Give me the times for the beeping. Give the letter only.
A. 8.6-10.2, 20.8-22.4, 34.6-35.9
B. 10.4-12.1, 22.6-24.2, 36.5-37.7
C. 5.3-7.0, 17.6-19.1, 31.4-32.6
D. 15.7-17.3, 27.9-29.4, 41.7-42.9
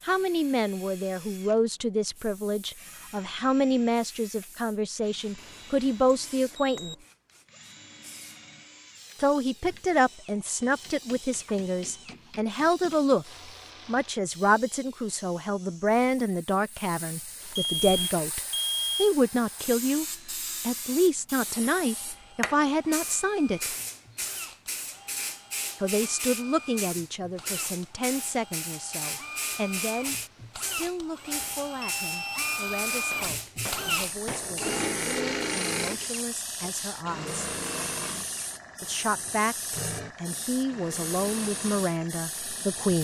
C.